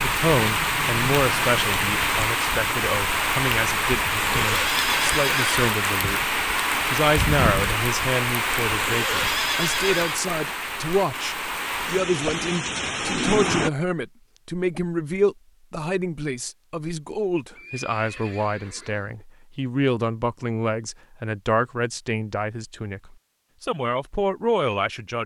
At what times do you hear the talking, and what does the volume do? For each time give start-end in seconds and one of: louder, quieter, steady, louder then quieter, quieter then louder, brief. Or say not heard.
0.0-25.2 steady.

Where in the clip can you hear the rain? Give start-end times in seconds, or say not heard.
0.0-13.7.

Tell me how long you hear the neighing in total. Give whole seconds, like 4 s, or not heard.
5 s.